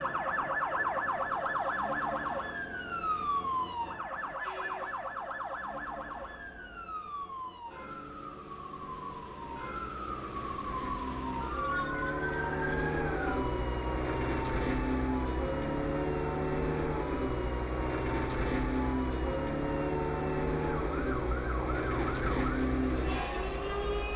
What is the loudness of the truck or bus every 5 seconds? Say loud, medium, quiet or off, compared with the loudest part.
quiet, quiet, loud, loud, loud.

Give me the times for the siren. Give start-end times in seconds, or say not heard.
0.0-24.1.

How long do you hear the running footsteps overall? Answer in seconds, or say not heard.
not heard.